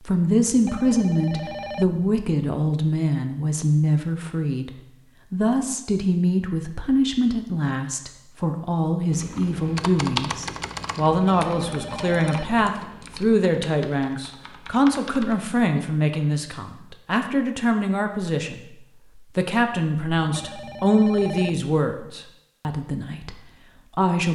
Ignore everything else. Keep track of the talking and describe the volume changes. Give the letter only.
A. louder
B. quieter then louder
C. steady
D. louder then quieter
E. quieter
C.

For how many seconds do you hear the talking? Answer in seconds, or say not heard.
24 s.